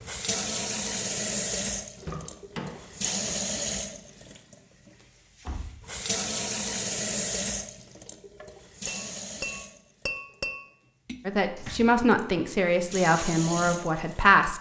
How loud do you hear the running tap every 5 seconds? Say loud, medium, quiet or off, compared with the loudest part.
loud, loud, medium.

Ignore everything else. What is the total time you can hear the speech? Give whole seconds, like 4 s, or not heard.
3 s.